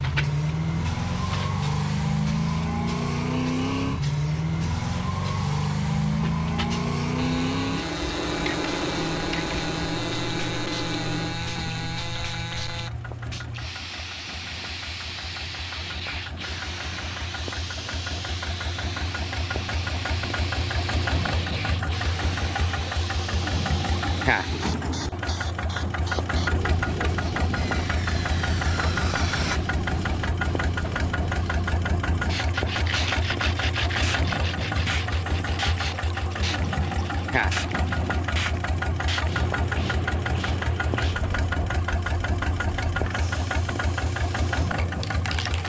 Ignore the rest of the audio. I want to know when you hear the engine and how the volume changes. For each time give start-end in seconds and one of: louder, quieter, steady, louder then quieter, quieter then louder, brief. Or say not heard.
0.0-45.6 quieter then louder.